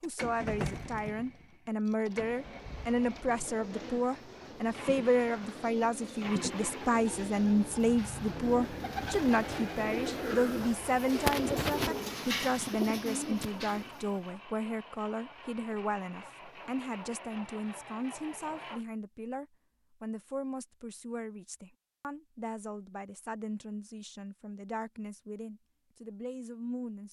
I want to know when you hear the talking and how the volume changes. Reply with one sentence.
The talking can be heard from 0.0 to 27.0 s, getting quieter.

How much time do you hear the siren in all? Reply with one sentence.
You can't hear the siren here.